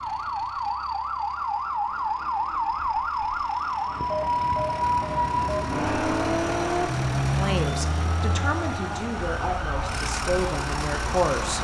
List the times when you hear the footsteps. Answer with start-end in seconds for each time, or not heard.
not heard.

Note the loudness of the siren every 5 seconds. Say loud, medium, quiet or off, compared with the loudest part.
loud, loud, medium.